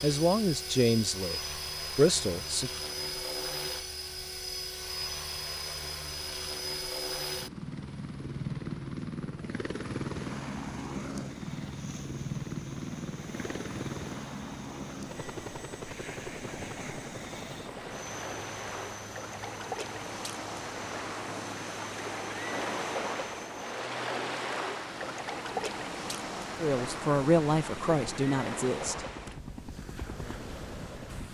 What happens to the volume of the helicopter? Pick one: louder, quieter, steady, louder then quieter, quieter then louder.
quieter.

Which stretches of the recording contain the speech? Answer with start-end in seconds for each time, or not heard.
0.0-2.7, 26.6-29.3.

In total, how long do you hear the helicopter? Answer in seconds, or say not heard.
31 s.